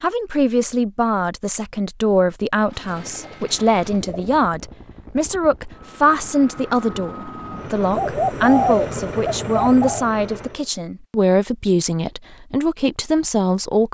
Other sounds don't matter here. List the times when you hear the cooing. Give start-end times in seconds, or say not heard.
2.7-4.4, 7.9-10.1.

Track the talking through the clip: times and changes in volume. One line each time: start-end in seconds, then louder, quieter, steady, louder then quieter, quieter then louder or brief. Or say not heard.
0.0-13.8 steady.